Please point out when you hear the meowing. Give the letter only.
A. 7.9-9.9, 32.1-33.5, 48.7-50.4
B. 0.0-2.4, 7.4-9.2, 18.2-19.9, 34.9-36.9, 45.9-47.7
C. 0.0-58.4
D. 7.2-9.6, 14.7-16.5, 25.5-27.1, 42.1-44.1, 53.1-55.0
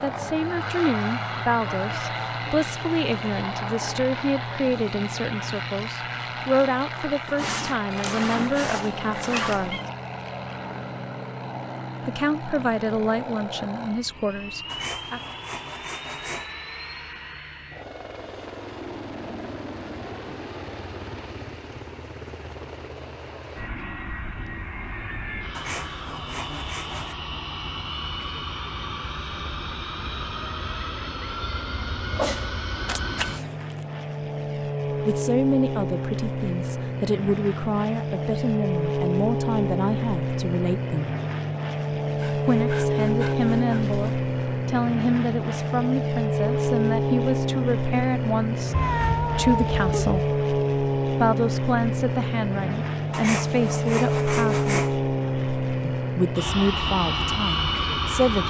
A.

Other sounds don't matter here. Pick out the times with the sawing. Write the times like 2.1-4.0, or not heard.
7.2-9.6, 14.7-16.5, 25.5-27.1, 42.1-44.1, 53.1-55.0.